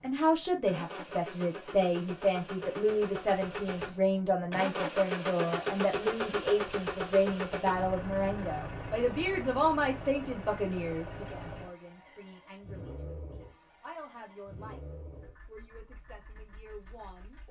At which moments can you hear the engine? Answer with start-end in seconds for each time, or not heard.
0.0-17.4.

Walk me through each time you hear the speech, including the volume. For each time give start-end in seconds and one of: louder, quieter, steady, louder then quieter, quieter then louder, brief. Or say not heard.
0.0-14.8 quieter
15.4-17.4 brief.